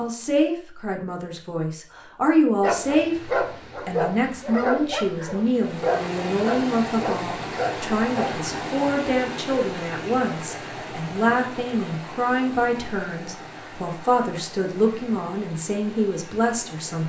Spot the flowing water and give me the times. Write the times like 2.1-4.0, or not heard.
5.5-17.0.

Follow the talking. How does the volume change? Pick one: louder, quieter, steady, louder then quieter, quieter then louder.
steady.